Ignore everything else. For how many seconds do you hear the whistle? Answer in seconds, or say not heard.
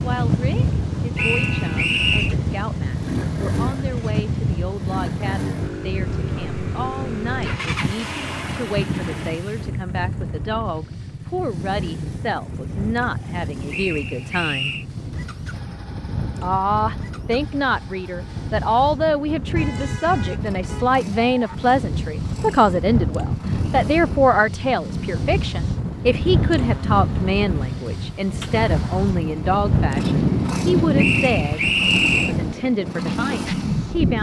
4 s.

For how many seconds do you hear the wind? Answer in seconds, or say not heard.
34 s.